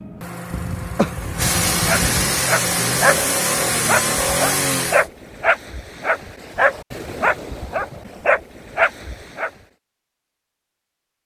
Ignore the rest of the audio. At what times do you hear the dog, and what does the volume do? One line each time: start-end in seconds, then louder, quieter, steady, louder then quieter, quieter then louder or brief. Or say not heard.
1.9-9.5 steady.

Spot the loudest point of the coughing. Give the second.
1 s.